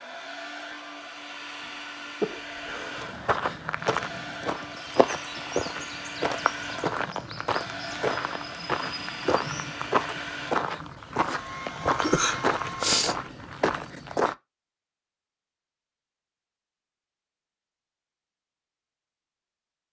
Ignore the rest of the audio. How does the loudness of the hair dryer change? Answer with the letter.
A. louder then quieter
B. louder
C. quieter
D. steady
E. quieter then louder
D.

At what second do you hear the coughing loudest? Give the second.
13 s.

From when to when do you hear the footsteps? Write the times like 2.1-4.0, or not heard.
3.0-14.3.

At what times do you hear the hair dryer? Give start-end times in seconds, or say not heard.
0.0-13.0.